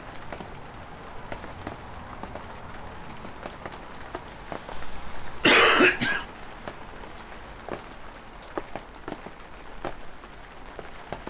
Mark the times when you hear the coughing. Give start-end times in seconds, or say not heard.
4.8-6.2.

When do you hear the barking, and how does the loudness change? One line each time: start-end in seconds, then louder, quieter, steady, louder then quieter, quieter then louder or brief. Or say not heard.
not heard.